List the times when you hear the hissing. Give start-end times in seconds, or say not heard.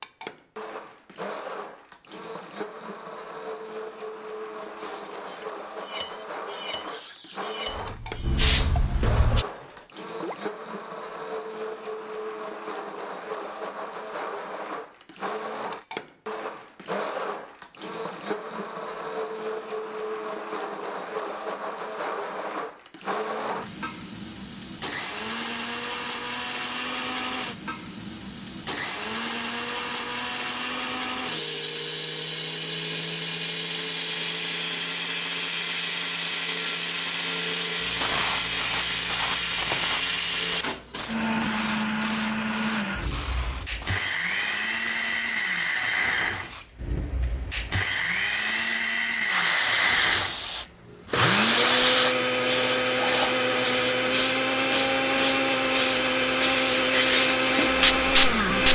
6.8-9.4, 37.8-58.7.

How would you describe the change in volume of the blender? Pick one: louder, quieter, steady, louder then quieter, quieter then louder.
louder.